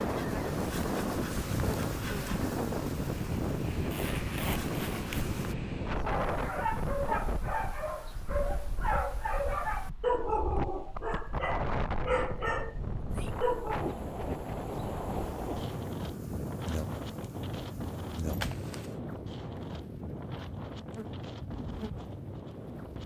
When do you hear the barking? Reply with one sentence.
The barking can be heard from 6.0 to 13.9 s.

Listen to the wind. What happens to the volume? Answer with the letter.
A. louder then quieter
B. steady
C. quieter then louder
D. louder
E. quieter
E.